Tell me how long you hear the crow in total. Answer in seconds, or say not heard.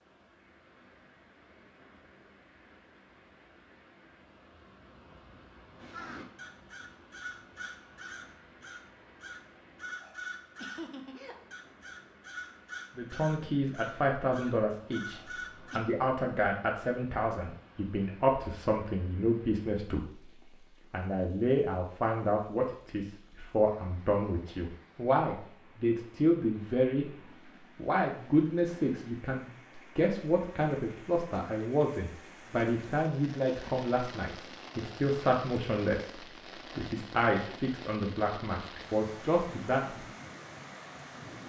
10 s.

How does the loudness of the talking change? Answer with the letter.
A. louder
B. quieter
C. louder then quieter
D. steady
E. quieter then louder
D.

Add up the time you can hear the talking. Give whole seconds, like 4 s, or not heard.
26 s.